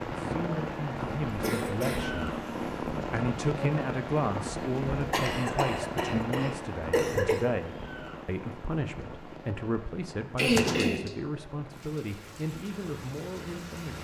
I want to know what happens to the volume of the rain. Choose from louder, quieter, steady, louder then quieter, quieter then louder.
quieter.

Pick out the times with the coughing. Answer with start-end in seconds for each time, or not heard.
1.2-2.8, 5.1-7.5, 10.3-11.1.